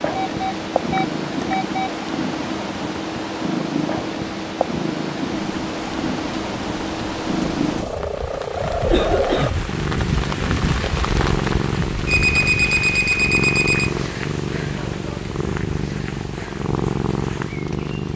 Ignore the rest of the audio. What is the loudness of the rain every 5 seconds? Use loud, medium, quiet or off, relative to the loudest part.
off, loud, loud, medium.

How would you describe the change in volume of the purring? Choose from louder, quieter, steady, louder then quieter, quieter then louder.
steady.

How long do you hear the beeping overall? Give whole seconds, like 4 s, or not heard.
4 s.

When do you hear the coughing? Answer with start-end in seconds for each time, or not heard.
8.7-9.6.